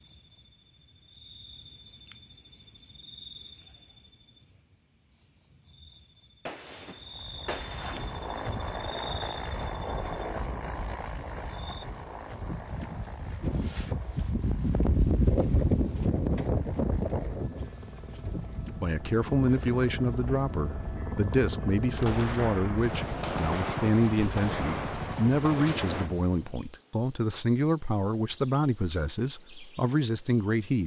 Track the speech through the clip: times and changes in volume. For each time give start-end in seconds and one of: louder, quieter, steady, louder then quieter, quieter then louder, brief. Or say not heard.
18.8-30.8 steady.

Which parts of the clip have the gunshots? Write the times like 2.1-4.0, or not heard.
6.5-8.2, 21.9-26.1.